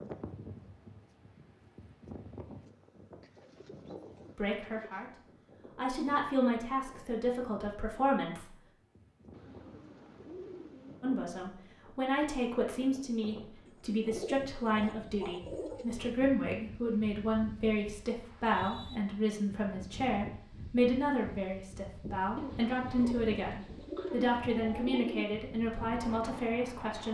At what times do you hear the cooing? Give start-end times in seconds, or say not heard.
3.2-5.2, 9.3-11.1, 13.7-16.1, 22.4-25.2.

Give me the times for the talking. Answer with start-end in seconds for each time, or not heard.
4.3-8.6, 11.0-27.0.